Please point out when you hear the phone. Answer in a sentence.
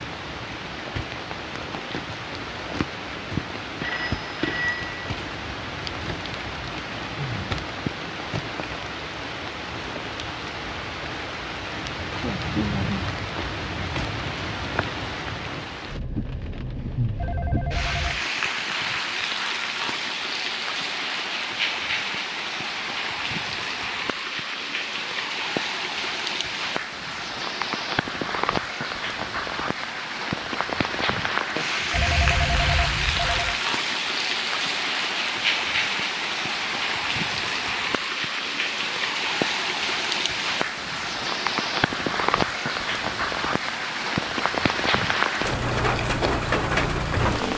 You can hear the phone from 3.8 to 5.0 s, from 17.1 to 18.2 s and from 31.9 to 33.6 s.